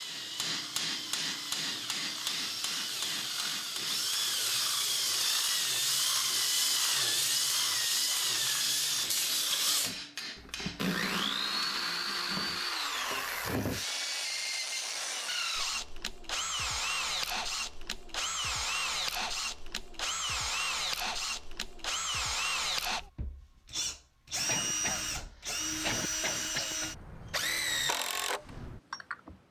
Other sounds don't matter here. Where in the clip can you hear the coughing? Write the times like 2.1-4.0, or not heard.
24.4-26.9.